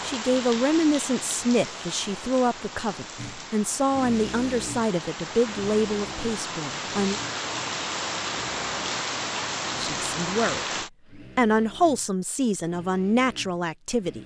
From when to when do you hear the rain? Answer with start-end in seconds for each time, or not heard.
0.0-10.9.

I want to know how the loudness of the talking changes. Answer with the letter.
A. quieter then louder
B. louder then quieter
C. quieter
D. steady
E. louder
D.